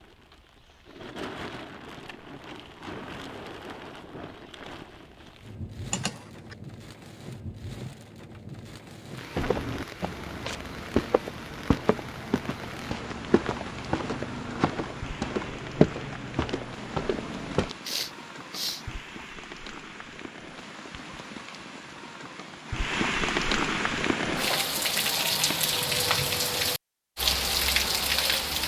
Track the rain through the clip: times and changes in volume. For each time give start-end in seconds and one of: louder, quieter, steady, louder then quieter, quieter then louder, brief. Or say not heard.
0.0-28.6 louder.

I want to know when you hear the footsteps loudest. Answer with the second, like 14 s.
16 s.